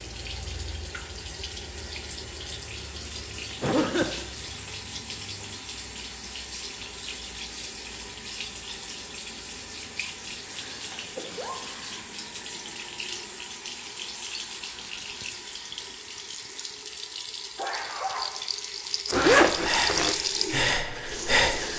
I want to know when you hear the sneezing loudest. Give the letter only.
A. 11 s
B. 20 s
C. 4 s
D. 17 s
C.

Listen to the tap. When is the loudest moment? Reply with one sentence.
The loudest moment of the tap is at 20 seconds.